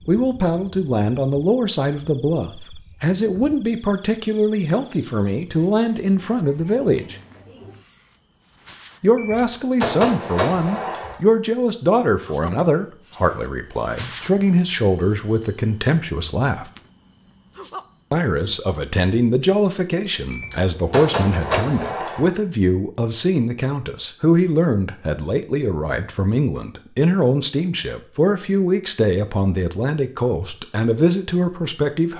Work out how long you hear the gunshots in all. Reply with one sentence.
You can hear the gunshots for 4 seconds altogether.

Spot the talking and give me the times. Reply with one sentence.
The talking can be heard from 0.1 to 7.2 s, from 9.0 to 16.7 s and from 18.1 to 32.1 s.